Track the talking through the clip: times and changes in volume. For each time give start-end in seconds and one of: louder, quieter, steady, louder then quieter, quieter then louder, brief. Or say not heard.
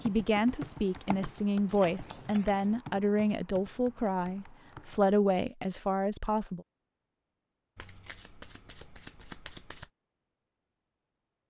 0.0-6.7 steady.